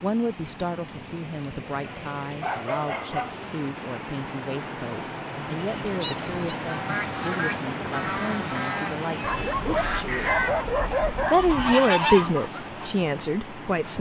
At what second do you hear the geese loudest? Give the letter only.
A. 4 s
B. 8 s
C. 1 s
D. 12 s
D.